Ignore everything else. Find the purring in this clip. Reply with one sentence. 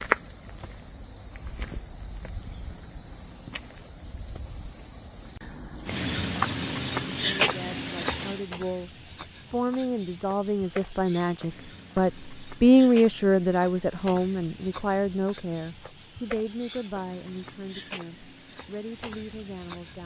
You can't hear the purring here.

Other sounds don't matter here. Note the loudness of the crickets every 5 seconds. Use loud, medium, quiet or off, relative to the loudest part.
loud, loud, quiet, quiet.